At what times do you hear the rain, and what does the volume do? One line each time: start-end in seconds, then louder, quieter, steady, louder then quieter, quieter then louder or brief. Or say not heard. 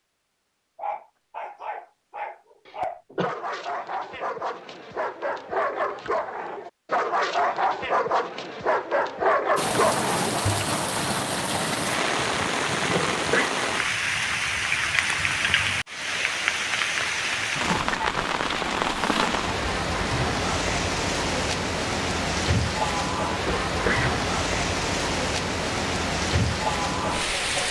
9.6-27.6 steady.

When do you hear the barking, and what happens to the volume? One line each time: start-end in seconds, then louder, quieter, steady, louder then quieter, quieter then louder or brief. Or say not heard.
0.8-10.7 louder.